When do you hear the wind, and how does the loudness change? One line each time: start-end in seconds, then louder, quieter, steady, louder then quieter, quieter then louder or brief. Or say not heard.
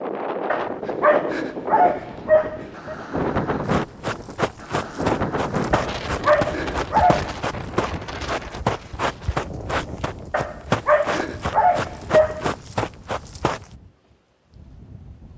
0.0-15.3 quieter.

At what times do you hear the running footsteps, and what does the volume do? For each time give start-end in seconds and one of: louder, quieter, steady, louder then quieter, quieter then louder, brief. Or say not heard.
3.6-13.7 steady.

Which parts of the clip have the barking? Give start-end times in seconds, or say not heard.
0.5-3.0, 5.7-7.3, 10.3-12.6.